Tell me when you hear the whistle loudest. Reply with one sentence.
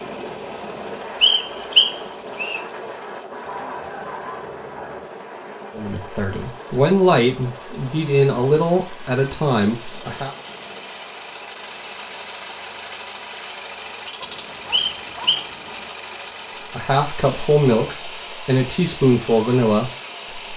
The loudest moment of the whistle is at 2 seconds.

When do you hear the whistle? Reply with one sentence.
The whistle can be heard from 1.2 to 2.6 s and from 14.7 to 15.5 s.